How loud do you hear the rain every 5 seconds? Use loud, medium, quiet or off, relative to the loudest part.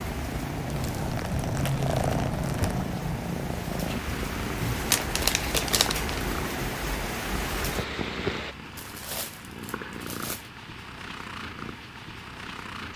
medium, loud, off.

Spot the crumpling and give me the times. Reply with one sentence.
The crumpling can be heard from 0.7 to 2.8 s, from 4.6 to 6.2 s and from 8.8 to 10.5 s.